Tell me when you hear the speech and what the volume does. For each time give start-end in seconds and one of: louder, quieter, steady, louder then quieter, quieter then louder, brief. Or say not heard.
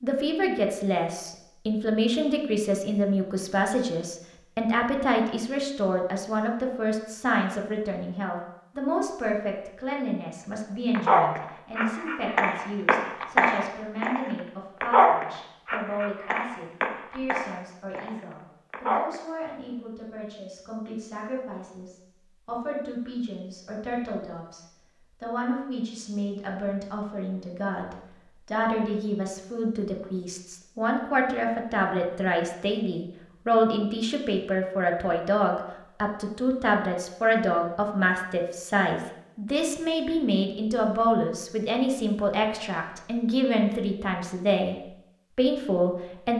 0.0-46.3 quieter then louder.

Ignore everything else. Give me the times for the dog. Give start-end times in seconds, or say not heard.
10.9-14.2, 14.8-18.1, 18.7-19.2.